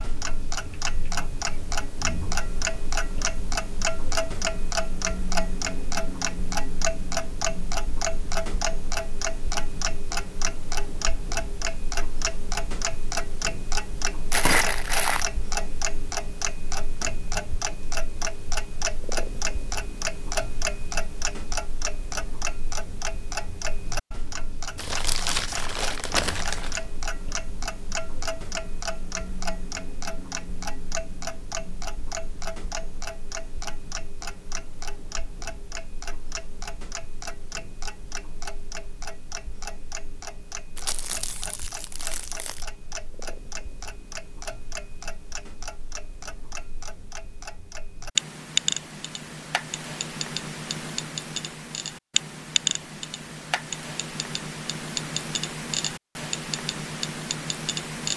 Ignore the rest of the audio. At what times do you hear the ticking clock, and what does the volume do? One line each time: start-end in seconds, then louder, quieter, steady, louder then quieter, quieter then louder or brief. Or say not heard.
0.0-58.1 quieter then louder.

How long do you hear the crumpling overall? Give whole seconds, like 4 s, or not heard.
5 s.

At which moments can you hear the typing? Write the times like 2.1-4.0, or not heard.
not heard.